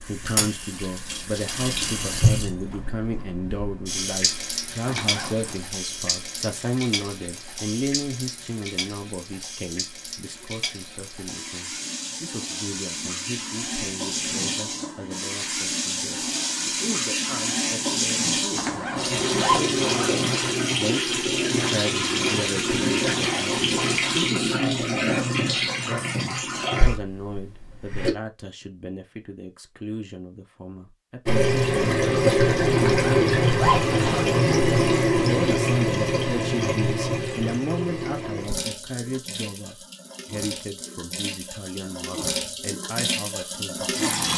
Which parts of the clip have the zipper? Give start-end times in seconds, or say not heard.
4.8-5.6, 18.6-20.1, 32.7-34.2.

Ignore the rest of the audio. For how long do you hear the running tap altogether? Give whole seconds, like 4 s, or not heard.
41 s.